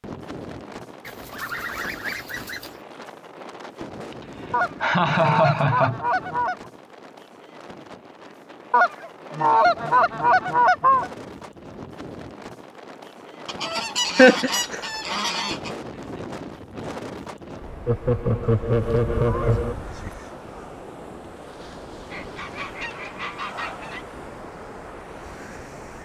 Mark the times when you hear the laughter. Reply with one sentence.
The laughter can be heard from 4.5 to 6.0 s, from 14.2 to 14.8 s and from 17.9 to 19.8 s.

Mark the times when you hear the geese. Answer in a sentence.
You can hear the geese from 1.1 to 2.8 s, from 4.5 to 6.5 s, from 8.7 to 11.1 s, from 13.4 to 15.7 s, from 18.4 to 20.1 s and from 22.1 to 24.1 s.